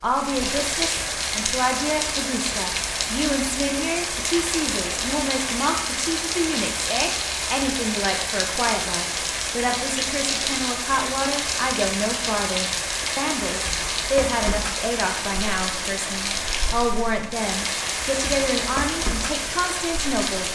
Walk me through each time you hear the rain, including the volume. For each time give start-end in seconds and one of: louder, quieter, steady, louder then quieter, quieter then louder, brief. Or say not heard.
0.0-20.4 steady.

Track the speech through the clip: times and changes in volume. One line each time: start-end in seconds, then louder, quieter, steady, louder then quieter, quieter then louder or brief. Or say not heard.
0.0-20.4 steady.